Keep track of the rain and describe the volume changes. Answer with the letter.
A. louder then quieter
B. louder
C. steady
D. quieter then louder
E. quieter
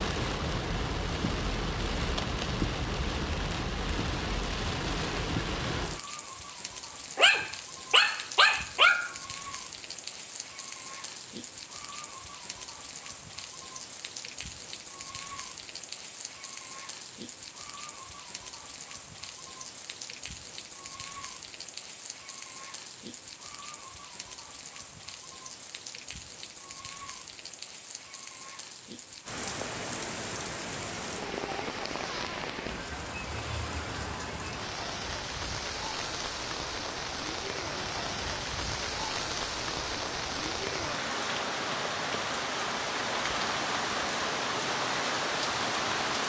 D.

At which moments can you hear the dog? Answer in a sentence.
You can hear the dog from 7.2 to 9.2 s.